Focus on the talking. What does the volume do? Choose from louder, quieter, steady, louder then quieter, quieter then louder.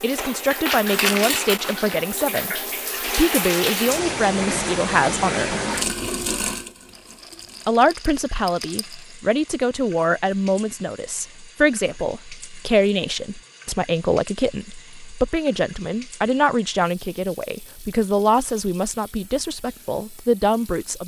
steady.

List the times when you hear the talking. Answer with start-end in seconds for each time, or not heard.
0.0-5.5, 7.7-21.0.